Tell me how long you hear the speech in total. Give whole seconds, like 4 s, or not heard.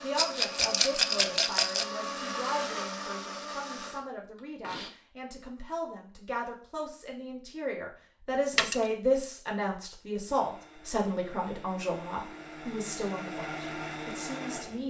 15 s.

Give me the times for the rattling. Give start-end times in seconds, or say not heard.
0.1-1.9, 8.5-8.9.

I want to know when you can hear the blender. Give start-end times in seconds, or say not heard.
0.0-4.9, 10.2-14.8.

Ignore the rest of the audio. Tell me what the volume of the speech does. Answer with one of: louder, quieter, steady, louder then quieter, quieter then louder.
louder then quieter.